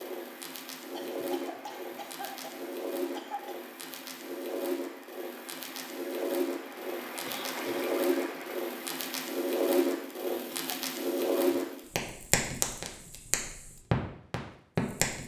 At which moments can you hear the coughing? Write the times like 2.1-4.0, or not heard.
0.9-3.5, 7.2-8.4, 10.3-11.7.